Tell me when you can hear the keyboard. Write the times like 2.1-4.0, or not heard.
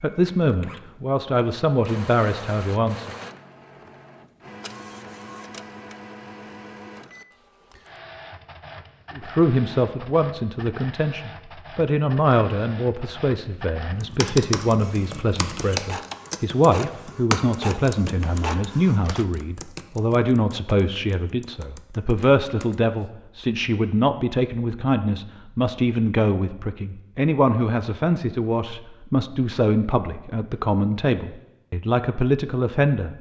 14.0-23.1.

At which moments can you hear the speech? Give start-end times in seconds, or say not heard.
0.0-3.1, 9.2-33.1.